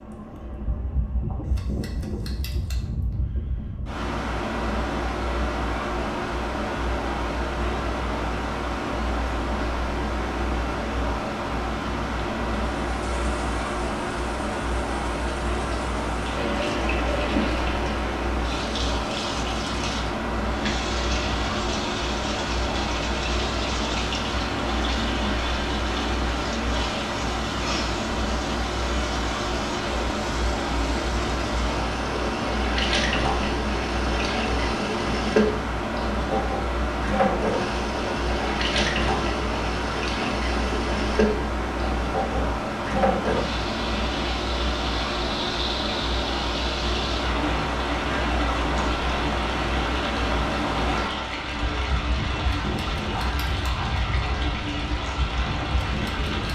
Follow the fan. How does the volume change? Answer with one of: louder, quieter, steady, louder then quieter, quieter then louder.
steady.